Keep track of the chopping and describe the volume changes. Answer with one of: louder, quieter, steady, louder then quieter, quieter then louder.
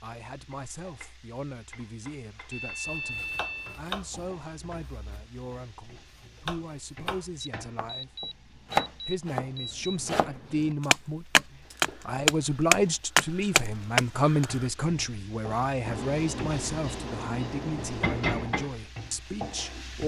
louder.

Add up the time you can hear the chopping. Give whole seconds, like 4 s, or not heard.
12 s.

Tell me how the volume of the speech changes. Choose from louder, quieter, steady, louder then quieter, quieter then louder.
louder then quieter.